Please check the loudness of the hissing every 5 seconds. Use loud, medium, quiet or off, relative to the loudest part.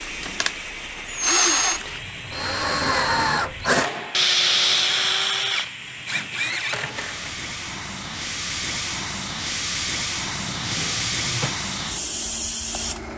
medium, loud, loud.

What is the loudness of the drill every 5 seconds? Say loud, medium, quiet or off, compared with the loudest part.
loud, loud, off.